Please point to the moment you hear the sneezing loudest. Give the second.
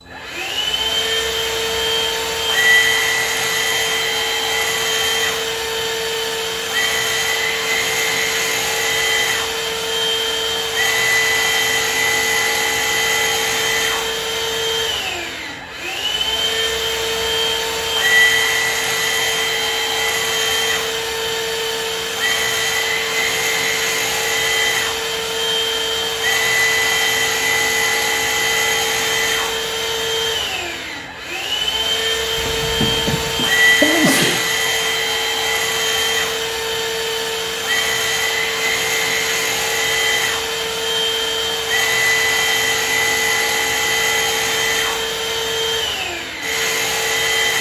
34 s.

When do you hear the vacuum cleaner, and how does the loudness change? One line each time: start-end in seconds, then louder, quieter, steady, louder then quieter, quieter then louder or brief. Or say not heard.
0.0-47.5 steady.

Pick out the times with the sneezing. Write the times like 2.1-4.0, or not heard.
32.4-34.5.